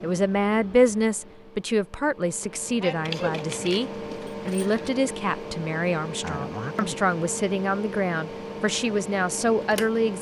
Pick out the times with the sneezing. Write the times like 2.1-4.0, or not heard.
2.8-3.4, 6.2-7.0.